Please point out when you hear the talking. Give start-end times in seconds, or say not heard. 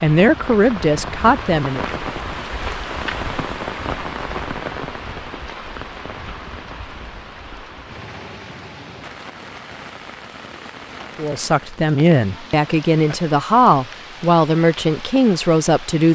0.0-1.8, 11.2-16.1.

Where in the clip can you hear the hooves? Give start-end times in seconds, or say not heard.
not heard.